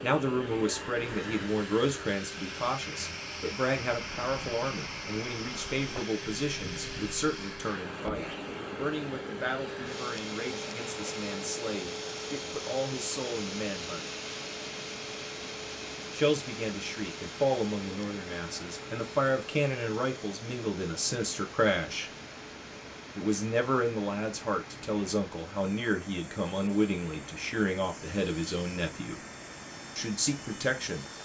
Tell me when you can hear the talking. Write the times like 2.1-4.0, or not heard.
0.0-14.1, 16.1-22.1, 23.1-29.2, 29.9-31.1.